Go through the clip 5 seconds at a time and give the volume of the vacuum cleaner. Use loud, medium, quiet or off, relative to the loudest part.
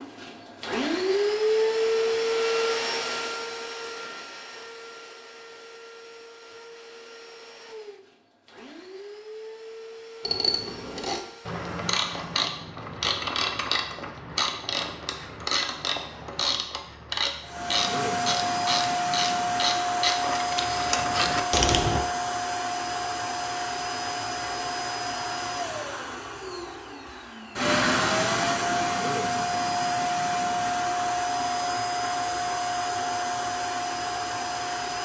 loud, quiet, quiet, loud, loud, loud, loud.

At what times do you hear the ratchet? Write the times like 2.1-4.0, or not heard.
10.2-22.1.